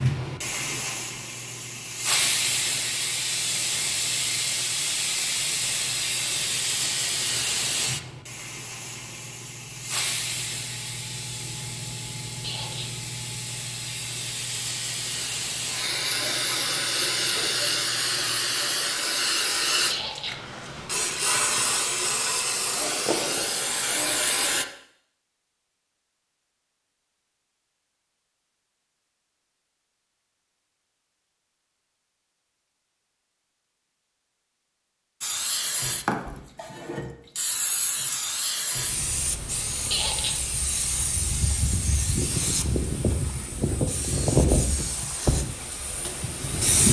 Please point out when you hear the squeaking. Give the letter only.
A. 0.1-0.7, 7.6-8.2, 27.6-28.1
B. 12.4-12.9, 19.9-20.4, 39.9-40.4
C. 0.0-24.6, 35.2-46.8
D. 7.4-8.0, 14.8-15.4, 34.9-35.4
B.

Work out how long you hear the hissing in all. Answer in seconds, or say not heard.
36 s.